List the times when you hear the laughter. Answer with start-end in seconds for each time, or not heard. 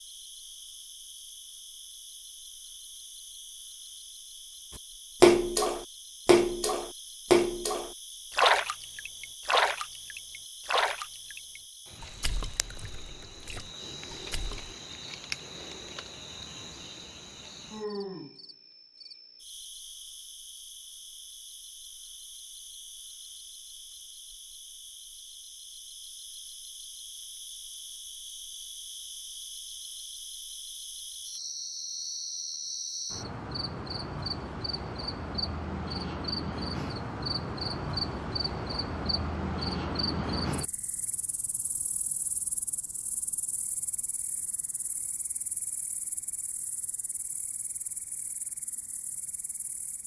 not heard.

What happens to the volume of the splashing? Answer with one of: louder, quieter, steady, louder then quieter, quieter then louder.
quieter.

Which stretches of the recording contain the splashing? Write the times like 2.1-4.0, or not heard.
5.2-14.8.